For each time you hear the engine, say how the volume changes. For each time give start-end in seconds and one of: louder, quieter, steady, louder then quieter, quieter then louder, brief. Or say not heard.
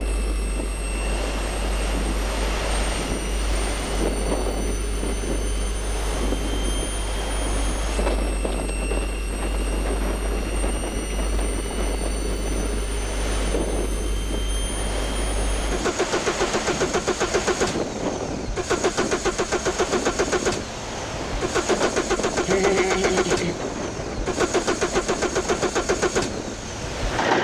0.0-27.4 louder.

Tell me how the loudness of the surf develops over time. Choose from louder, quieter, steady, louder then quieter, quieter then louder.
steady.